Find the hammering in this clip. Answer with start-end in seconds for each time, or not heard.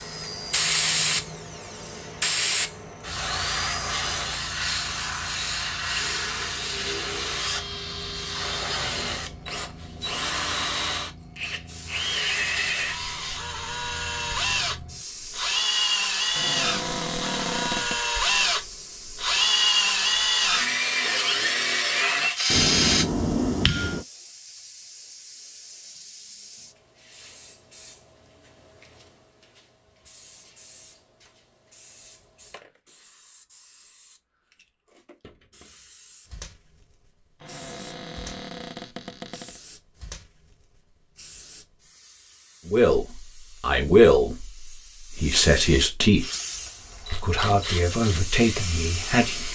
22.5-24.1.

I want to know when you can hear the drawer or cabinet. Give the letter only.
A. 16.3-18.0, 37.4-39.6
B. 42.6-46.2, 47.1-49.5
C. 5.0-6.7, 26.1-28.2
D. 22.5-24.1
A.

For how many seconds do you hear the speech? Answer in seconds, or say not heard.
6 s.